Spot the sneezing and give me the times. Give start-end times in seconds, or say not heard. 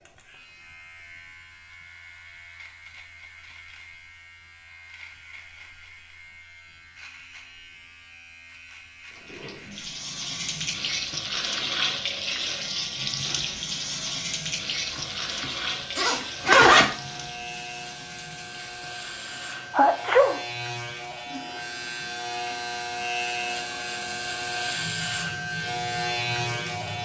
19.7-20.4.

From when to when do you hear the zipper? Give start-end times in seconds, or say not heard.
14.8-16.9.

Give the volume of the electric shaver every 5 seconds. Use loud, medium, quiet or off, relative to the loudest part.
quiet, quiet, quiet, medium, loud, loud.